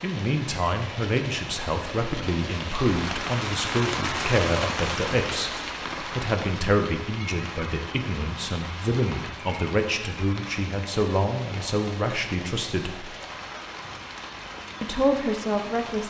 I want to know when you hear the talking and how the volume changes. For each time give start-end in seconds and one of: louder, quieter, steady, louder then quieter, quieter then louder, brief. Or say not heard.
0.0-13.1 steady
14.8-16.0 brief.